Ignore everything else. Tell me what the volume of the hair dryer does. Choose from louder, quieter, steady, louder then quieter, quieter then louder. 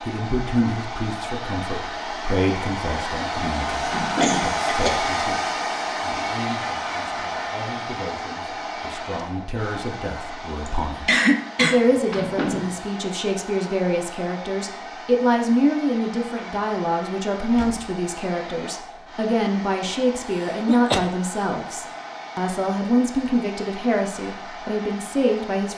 quieter.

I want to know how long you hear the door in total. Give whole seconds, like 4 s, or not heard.
2 s.